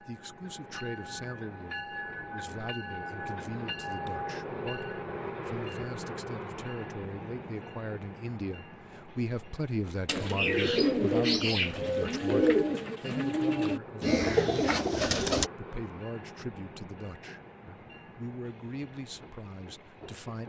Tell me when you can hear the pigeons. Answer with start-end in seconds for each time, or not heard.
10.1-15.5.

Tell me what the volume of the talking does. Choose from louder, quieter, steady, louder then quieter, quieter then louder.
louder then quieter.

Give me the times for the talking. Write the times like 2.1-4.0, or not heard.
0.0-14.8, 15.6-20.4.